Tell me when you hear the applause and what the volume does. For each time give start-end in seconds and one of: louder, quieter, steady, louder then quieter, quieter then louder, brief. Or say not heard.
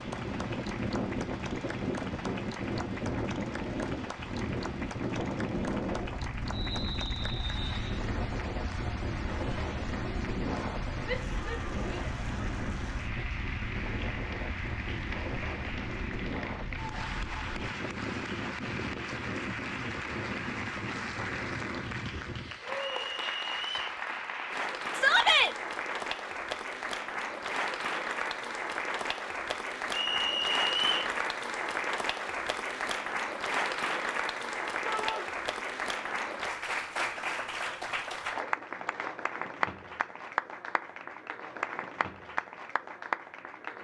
0.0-43.7 louder.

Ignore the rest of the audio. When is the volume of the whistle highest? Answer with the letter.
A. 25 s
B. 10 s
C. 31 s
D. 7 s
C.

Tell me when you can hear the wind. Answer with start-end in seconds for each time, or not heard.
0.0-22.6.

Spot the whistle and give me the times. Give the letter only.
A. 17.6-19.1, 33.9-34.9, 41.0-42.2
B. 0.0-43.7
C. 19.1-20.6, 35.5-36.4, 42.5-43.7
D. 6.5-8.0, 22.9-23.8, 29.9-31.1
D.